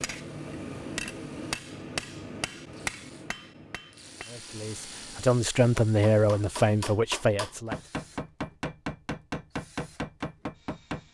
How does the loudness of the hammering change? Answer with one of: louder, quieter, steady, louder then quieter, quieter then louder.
quieter then louder.